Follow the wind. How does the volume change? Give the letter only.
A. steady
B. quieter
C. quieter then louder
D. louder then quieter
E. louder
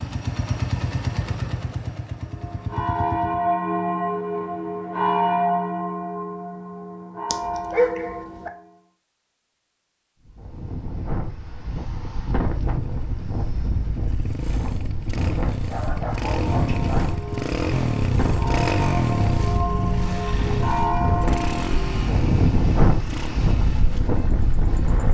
E.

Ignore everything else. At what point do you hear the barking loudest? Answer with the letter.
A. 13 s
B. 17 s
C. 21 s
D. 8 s
D.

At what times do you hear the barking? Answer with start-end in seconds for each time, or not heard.
7.3-8.5, 15.6-17.1.